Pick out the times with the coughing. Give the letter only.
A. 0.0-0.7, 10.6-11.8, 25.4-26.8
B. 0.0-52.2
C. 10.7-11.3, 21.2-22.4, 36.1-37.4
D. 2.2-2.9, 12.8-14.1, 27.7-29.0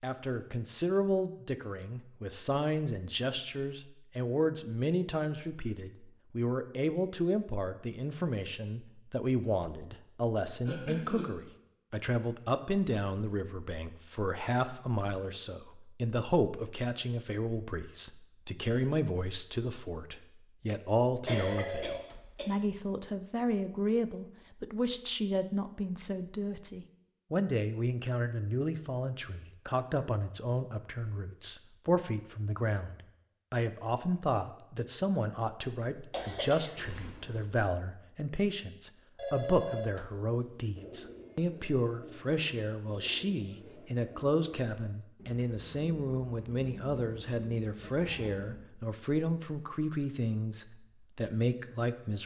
C.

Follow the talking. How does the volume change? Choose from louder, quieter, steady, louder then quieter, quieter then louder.
steady.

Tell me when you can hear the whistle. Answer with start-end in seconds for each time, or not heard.
not heard.